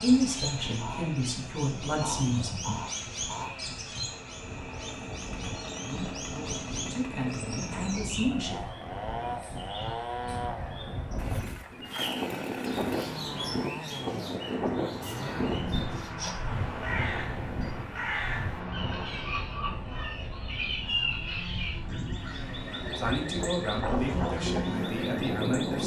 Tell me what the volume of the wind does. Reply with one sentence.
The volume of the wind goes up.